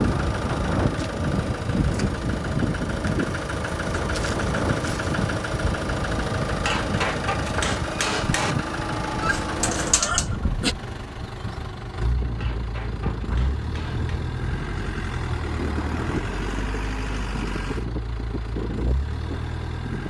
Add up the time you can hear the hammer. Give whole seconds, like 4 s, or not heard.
4 s.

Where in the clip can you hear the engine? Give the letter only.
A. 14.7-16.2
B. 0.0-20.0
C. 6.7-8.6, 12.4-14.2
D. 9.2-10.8
B.